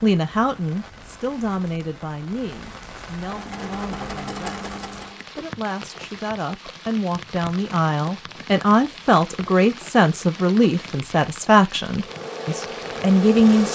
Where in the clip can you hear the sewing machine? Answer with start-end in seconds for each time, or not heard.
3.1-5.2, 11.9-13.7.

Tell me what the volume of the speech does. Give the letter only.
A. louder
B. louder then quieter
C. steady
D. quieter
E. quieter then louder
E.